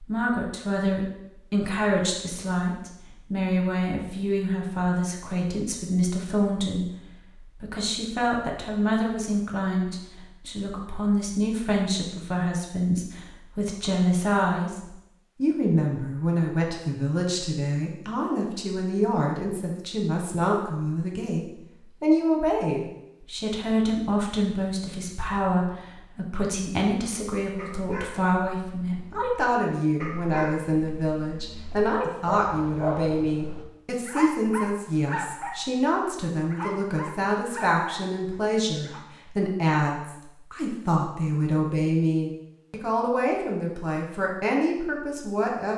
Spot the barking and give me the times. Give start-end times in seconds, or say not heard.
27.6-39.0.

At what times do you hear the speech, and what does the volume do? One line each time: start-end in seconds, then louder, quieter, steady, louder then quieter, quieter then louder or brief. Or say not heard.
0.0-45.7 steady.